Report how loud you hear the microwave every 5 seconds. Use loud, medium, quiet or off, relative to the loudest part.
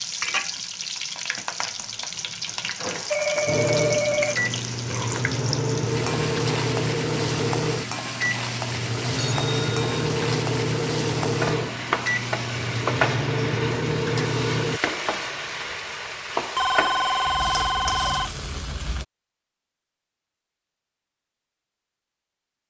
loud, loud, loud, off, off.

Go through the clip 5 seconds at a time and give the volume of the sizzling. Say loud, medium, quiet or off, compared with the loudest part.
loud, loud, loud, loud, off.